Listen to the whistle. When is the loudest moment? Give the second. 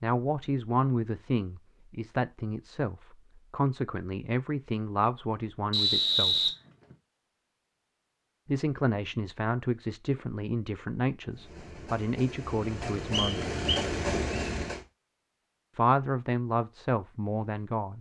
6 s.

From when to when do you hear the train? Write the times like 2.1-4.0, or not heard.
11.3-14.8.